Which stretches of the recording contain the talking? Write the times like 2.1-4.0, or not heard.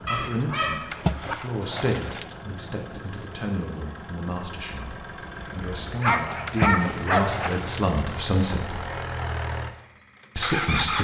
0.0-8.8, 10.3-11.0.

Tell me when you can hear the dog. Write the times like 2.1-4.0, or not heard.
0.1-1.4, 6.0-7.5.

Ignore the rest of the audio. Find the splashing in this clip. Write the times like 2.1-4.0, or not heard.
0.9-2.4, 6.5-8.2.